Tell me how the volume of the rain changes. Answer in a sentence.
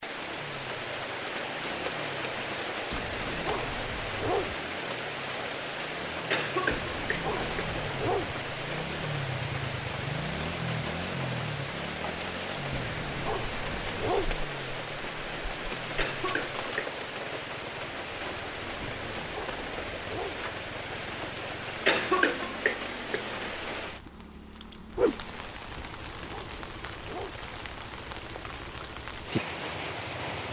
The volume of the rain stays about the same.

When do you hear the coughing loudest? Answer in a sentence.
The volume of the coughing peaks at 22 seconds.